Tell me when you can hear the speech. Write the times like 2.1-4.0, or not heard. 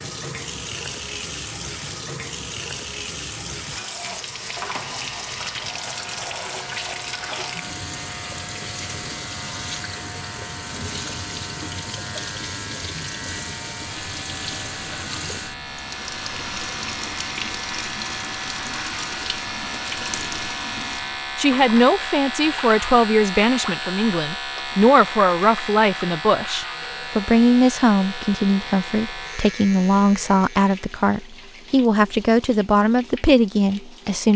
21.4-34.3.